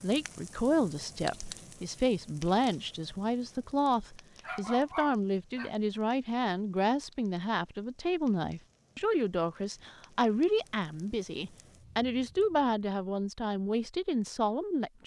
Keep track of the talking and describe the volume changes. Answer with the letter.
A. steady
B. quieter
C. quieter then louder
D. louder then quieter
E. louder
A.